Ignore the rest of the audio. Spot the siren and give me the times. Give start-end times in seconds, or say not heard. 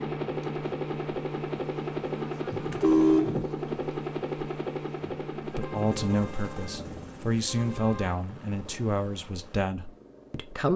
not heard.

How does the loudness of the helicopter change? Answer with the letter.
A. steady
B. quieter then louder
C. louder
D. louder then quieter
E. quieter
E.